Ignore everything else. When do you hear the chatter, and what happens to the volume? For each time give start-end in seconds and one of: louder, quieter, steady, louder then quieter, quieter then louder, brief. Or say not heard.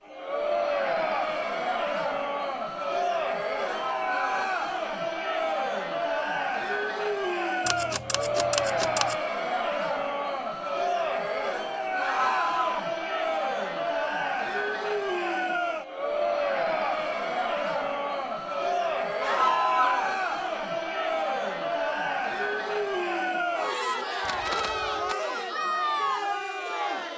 0.0-27.1 steady.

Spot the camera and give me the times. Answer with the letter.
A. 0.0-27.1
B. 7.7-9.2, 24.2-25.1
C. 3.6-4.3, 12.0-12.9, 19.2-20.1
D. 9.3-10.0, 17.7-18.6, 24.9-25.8
B.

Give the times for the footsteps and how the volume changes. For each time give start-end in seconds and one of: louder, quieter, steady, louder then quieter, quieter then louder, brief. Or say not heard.
not heard.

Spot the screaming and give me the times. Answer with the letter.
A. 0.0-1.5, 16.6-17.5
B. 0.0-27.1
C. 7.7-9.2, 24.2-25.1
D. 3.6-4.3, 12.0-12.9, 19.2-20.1
D.